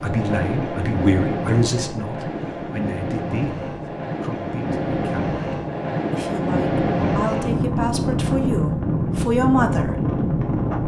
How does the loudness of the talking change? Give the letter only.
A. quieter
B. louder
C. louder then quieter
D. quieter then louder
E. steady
D.